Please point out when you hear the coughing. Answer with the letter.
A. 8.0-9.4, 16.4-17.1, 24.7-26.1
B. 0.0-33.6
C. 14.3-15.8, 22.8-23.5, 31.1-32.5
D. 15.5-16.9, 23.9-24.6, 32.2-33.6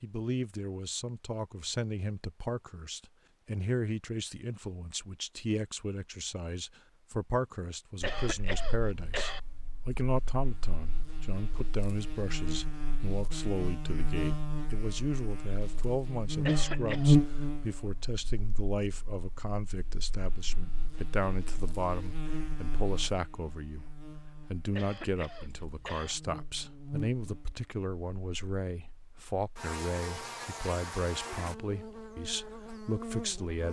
A.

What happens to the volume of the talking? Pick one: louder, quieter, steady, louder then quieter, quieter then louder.
steady.